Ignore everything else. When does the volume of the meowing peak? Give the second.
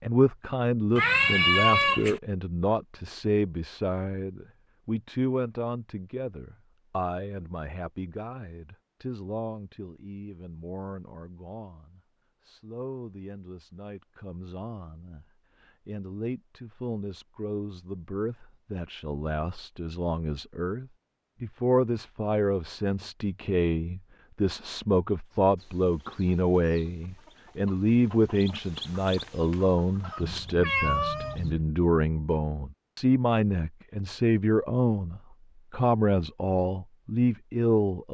2 s.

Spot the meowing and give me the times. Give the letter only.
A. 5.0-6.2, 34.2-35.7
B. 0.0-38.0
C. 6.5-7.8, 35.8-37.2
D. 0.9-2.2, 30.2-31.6
D.